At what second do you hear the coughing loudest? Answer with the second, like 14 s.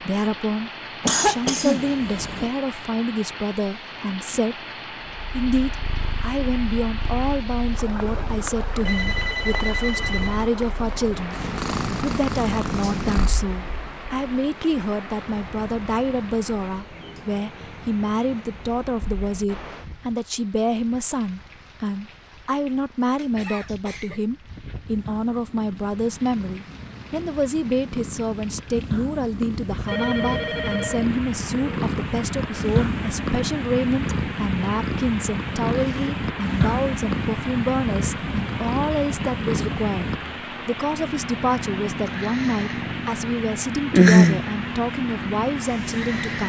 1 s.